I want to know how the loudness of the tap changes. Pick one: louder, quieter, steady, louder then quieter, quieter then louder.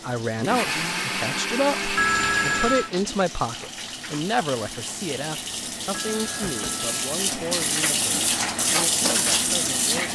louder.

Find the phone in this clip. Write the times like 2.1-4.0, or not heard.
1.9-2.9, 5.9-7.0.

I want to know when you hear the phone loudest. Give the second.
2 s.